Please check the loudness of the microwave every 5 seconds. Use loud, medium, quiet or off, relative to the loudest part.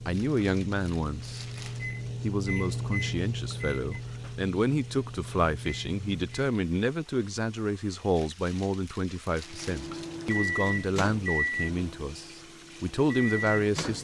loud, medium, loud.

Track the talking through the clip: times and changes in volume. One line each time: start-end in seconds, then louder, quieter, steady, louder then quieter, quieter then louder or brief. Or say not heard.
0.1-1.4 brief
2.2-13.9 steady.